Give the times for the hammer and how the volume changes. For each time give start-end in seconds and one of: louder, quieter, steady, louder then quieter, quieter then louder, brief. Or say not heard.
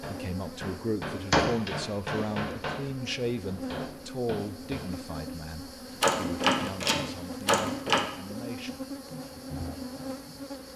0.0-5.0 quieter then louder.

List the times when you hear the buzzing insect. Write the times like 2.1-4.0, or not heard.
0.0-10.7.